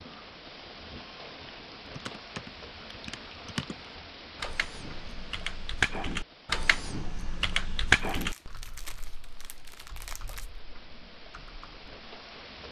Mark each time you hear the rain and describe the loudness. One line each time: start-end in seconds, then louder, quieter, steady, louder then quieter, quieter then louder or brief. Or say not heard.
0.0-12.6 quieter then louder.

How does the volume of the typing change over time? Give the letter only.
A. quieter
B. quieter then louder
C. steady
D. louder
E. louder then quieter
E.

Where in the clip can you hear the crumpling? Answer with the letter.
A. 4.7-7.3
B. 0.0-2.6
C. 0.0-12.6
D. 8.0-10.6
D.